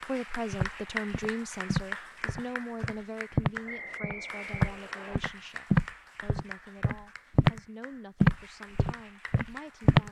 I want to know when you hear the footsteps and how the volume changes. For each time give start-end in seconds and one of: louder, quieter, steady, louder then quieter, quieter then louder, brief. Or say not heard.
0.5-7.6 louder then quieter
8.2-10.0 brief.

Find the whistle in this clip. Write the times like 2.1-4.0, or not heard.
3.6-5.2.